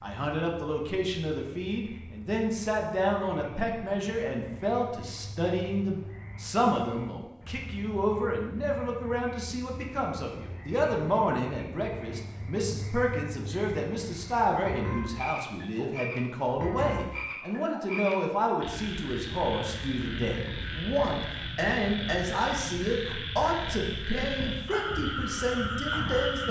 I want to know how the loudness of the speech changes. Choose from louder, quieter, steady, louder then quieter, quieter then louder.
steady.